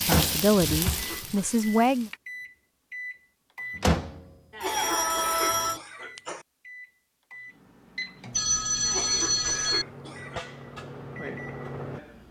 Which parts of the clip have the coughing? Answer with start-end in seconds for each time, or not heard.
0.7-1.6, 4.5-6.5, 8.8-10.4.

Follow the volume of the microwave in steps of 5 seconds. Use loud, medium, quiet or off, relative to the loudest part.
loud, quiet, medium.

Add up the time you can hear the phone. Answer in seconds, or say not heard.
3 s.